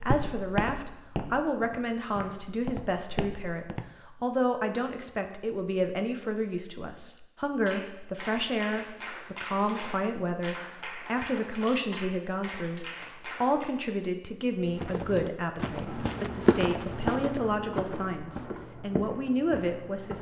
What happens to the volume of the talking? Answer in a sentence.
The loudness of the talking stays about the same.